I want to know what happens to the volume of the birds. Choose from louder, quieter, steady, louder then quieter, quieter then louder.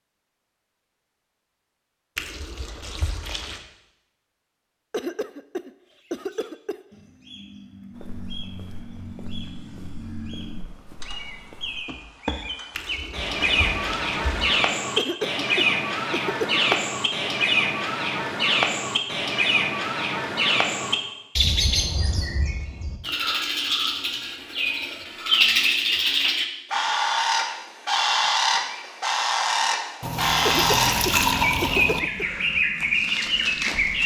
louder.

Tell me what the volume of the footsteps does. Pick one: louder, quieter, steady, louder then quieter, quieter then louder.
louder.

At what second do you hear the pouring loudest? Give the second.
31 s.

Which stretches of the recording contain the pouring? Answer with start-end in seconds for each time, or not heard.
2.1-3.6, 12.8-14.6, 30.0-32.0.